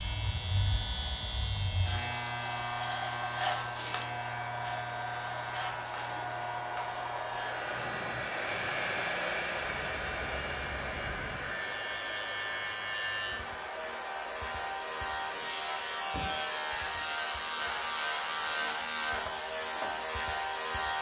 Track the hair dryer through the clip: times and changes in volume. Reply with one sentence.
The hair dryer can be heard from 0.0 to 20.7 s, getting louder then quieter.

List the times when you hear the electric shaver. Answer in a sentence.
You can hear the electric shaver from 0.0 to 20.9 s.